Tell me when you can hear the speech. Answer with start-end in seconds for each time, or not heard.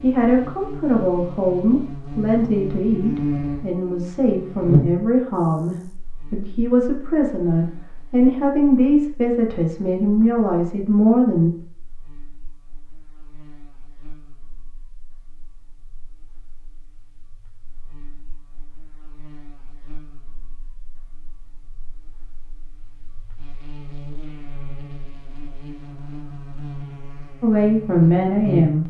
0.0-11.5, 27.4-28.8.